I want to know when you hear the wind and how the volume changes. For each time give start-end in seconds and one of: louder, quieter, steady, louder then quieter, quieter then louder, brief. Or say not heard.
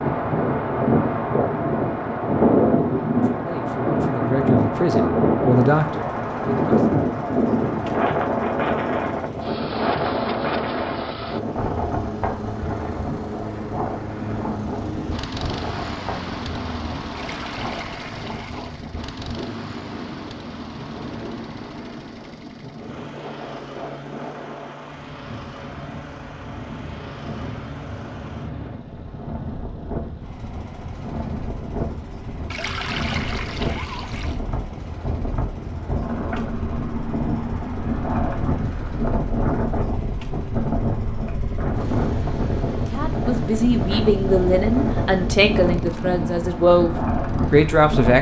0.0-48.1 quieter then louder.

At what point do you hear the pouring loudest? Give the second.
33 s.